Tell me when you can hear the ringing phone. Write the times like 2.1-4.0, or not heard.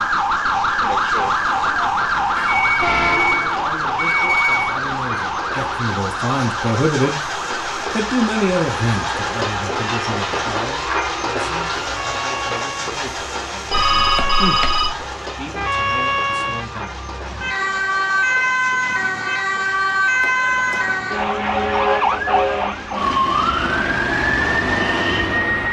2.4-4.8, 13.7-14.9, 20.2-20.9.